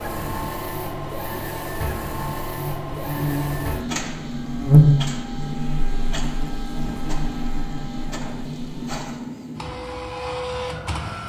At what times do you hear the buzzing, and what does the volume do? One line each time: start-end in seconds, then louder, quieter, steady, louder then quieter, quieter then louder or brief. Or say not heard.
0.2-9.1 louder then quieter.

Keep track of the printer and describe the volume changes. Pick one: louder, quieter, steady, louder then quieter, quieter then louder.
steady.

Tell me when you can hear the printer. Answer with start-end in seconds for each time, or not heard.
0.0-11.2.